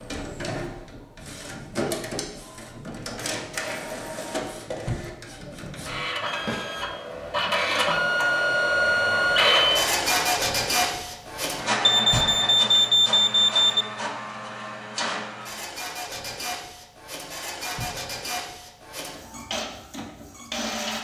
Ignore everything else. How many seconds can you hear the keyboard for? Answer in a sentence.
The keyboard can't be heard in this clip.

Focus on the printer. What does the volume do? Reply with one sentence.
The volume of the printer goes up, then down.